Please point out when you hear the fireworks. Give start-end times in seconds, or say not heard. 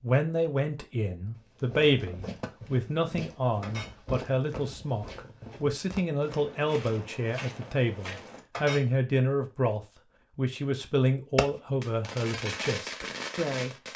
11.3-13.9.